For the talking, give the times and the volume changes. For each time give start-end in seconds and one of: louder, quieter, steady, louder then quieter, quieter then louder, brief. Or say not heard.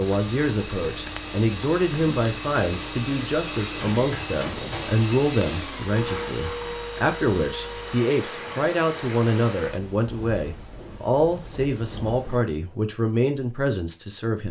0.0-14.4 steady.